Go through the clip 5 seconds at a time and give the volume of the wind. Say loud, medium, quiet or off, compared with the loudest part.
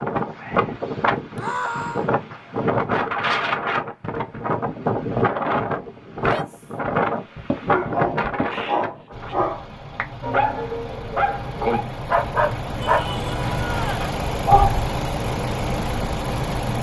loud, loud, off, off.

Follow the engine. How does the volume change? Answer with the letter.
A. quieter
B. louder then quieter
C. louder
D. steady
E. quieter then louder
C.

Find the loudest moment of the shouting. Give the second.
2 s.